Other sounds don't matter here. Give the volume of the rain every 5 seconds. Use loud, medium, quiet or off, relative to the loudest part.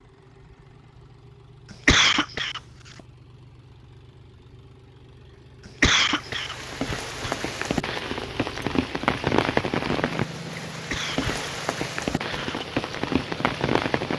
off, loud, loud.